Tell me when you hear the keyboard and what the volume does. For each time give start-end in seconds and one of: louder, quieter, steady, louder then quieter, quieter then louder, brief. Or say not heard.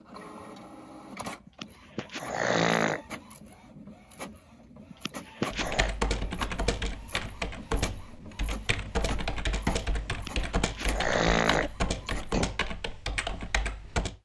5.5-14.2 steady.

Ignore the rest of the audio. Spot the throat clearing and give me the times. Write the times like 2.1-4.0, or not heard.
1.4-3.0, 4.9-6.0, 10.1-12.5.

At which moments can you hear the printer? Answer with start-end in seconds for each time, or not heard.
0.0-12.5.